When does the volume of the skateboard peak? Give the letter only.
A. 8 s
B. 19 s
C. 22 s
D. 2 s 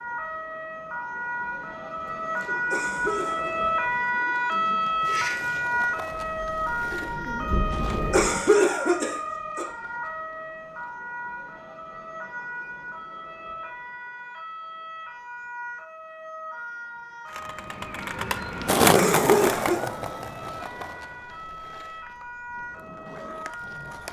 B.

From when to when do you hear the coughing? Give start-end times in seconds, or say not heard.
2.7-3.5, 8.1-9.7, 18.9-19.8.